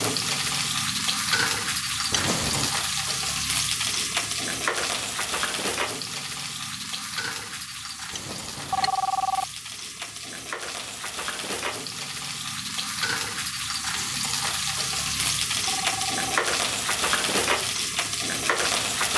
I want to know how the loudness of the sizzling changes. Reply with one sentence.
The volume of the sizzling goes down, then up.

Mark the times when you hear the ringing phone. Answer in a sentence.
You can hear the ringing phone from 2.1 to 2.8 s, from 8.1 to 9.4 s and from 15.1 to 16.4 s.